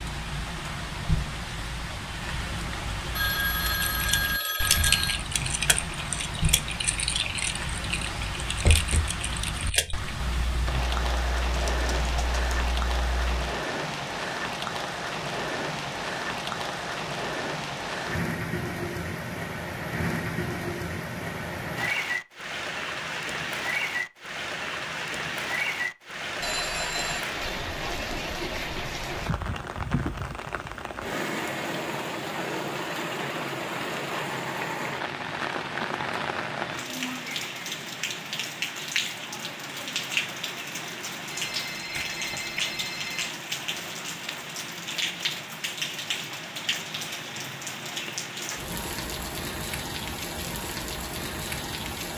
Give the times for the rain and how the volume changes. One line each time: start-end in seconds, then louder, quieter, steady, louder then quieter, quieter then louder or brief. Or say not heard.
0.0-52.1 steady.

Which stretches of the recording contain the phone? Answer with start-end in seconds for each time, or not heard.
3.1-5.2, 26.4-27.2, 41.3-43.3.